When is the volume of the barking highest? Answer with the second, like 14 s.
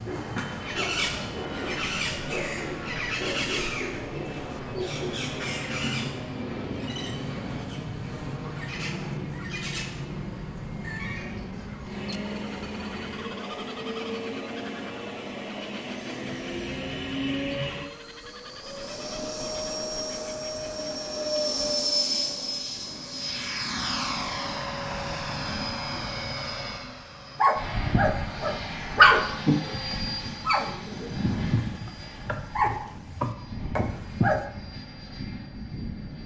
29 s.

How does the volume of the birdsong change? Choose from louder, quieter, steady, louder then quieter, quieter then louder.
quieter.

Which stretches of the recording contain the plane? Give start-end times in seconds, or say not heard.
0.1-36.2.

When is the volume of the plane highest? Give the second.
22 s.